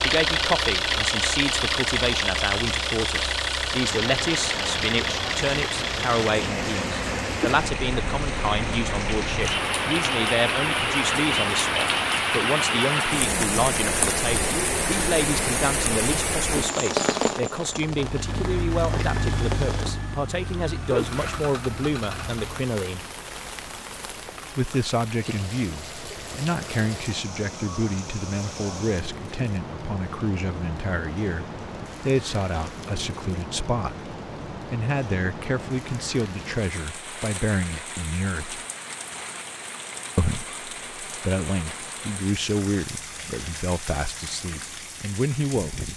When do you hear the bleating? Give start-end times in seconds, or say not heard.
not heard.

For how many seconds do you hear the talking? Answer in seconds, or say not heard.
43 s.